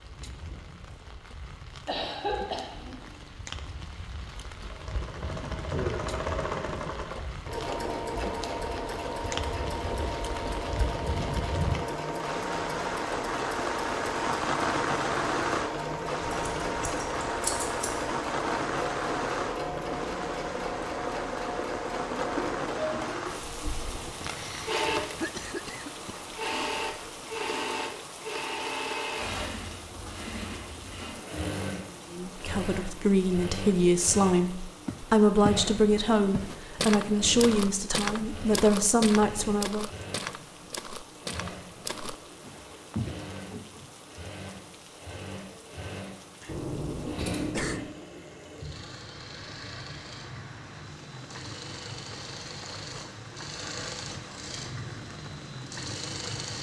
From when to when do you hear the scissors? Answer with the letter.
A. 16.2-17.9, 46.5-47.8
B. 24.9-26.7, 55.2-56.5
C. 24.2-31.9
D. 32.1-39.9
A.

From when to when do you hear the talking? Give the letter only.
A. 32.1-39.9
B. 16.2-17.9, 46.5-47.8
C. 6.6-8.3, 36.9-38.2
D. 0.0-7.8
A.